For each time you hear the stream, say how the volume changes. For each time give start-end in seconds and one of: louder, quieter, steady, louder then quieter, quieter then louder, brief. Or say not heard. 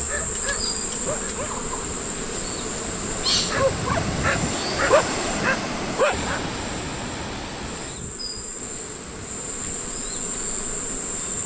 0.0-11.4 louder then quieter.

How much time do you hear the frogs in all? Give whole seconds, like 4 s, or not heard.
not heard.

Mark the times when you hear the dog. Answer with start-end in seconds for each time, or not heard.
0.1-1.6, 3.5-6.4.